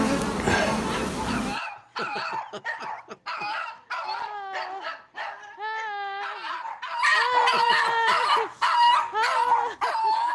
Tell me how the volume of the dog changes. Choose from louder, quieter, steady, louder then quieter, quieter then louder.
louder.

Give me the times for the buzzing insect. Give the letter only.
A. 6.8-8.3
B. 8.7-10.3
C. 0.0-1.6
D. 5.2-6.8
C.